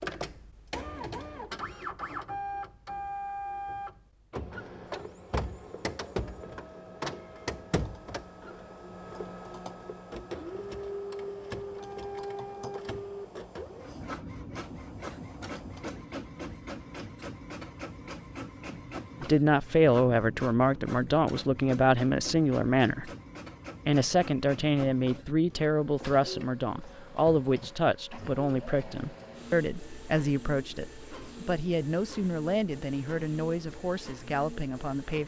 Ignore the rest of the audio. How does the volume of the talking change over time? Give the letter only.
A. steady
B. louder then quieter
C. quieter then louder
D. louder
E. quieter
E.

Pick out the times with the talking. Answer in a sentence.
The talking can be heard from 19.2 to 23.1 s and from 23.9 to 35.2 s.